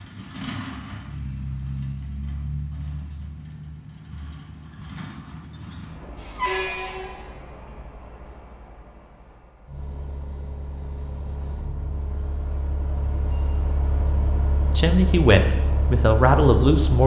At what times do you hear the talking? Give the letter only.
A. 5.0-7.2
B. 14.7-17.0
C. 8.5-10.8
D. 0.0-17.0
B.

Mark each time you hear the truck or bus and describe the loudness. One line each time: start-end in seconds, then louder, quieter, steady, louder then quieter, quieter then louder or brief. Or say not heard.
0.0-17.0 quieter then louder.